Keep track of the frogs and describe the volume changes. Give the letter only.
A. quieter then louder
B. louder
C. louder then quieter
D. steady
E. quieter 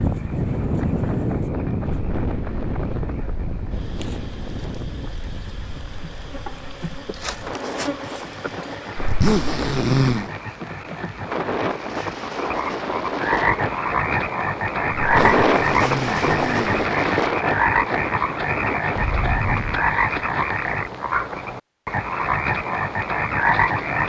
B.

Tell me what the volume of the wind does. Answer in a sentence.
The loudness of the wind goes down, then up.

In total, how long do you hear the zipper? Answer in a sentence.
You can hear the zipper for 3 seconds altogether.